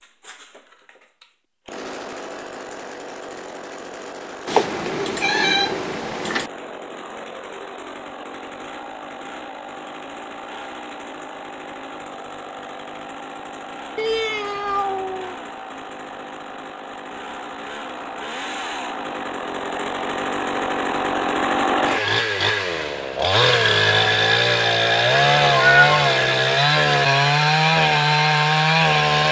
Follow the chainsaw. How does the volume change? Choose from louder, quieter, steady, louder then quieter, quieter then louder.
louder.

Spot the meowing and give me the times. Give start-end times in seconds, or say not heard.
4.5-6.5, 13.9-15.3, 25.6-26.2.